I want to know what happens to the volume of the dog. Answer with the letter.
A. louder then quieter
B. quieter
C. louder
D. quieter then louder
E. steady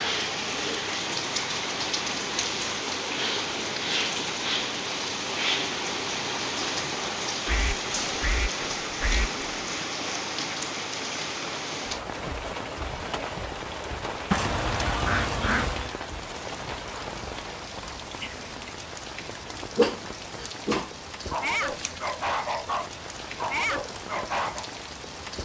E.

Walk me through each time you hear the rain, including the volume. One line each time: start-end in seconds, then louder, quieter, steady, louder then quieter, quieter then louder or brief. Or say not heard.
0.0-25.4 quieter.